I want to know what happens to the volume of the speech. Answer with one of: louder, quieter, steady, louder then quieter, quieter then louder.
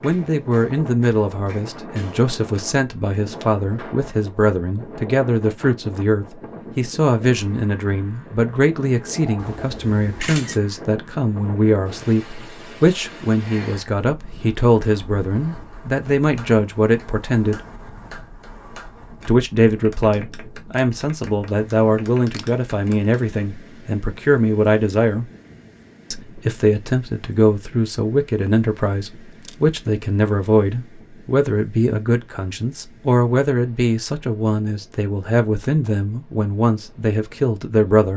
steady.